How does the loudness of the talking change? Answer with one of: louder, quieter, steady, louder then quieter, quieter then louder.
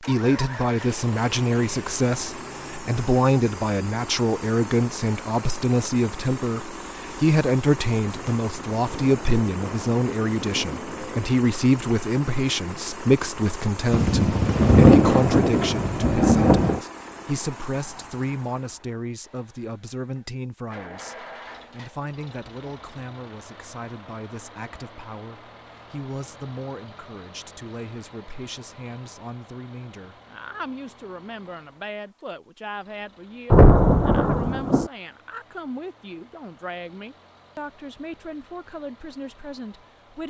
quieter.